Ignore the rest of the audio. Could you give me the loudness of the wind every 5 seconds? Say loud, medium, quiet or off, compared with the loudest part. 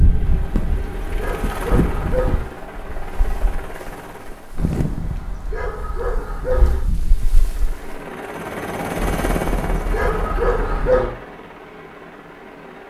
loud, medium, off.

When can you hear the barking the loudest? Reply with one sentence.
The volume of the barking peaks at 11 seconds.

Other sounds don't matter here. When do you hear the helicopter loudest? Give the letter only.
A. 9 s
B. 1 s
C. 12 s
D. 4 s
A.